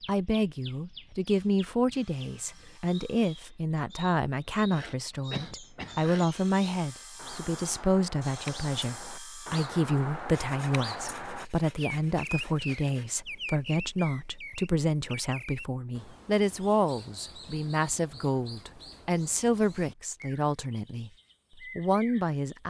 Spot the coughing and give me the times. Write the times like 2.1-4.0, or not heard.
5.3-6.0.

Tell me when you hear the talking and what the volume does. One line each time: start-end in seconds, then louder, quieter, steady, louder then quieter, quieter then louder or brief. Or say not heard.
0.1-21.1 steady
21.8-22.6 brief.